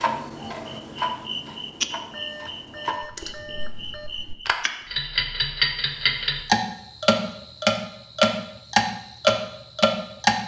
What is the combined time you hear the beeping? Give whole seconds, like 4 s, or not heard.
2 s.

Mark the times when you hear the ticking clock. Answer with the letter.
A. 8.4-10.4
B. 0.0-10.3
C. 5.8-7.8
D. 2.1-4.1
B.